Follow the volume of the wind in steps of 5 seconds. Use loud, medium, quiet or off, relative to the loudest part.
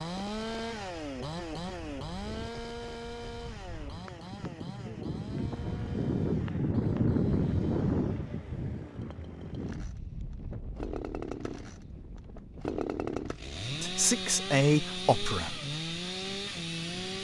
quiet, loud, quiet, quiet.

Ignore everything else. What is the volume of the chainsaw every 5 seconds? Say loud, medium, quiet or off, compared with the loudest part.
loud, quiet, loud, loud.